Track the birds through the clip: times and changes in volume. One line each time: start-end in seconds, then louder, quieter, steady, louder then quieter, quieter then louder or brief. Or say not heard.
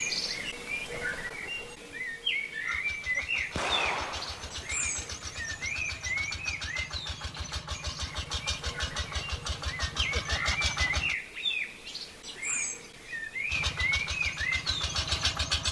0.0-15.3 quieter then louder.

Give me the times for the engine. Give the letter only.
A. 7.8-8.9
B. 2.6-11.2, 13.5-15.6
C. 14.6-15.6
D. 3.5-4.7
B.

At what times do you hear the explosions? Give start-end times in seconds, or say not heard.
3.5-4.7.